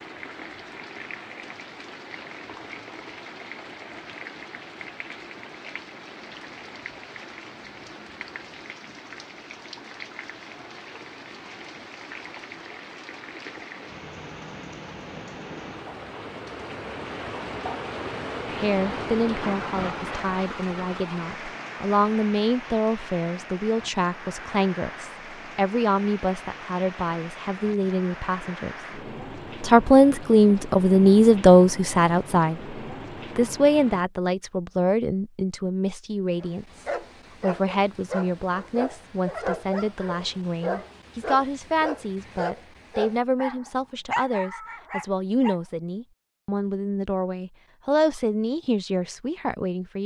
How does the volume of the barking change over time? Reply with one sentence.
The loudness of the barking stays about the same.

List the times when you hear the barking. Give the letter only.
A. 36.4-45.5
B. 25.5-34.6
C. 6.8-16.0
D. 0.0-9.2
A.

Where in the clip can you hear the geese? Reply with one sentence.
You can't hear the geese here.